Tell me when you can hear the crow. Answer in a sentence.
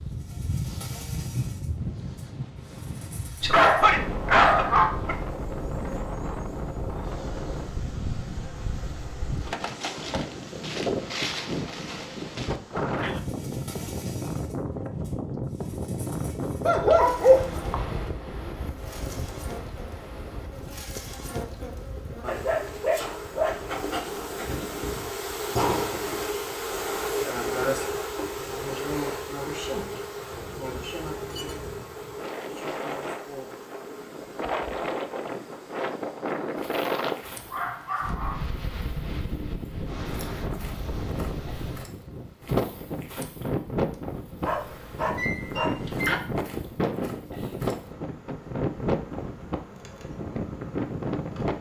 You can't hear the crow here.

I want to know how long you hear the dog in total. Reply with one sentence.
The dog can be heard for 7 seconds in total.